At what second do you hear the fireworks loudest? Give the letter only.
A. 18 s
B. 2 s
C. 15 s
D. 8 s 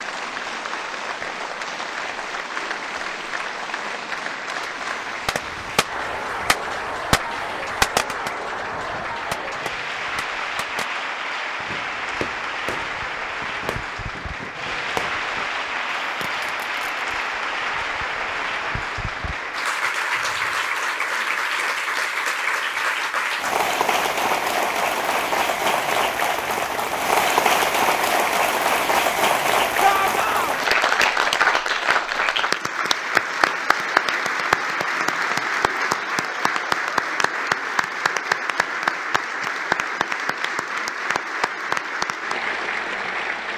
D.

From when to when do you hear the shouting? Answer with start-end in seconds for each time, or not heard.
29.8-30.6.